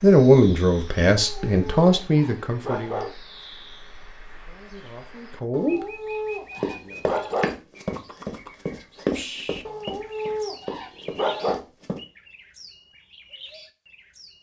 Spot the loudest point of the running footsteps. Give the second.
9 s.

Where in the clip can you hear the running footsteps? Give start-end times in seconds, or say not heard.
6.5-12.0.